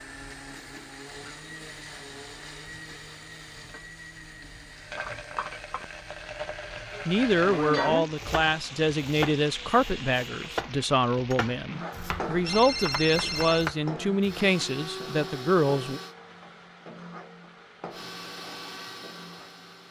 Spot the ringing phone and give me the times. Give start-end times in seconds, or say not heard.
11.9-13.7.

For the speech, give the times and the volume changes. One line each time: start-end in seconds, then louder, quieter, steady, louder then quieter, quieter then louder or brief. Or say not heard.
7.0-16.0 steady.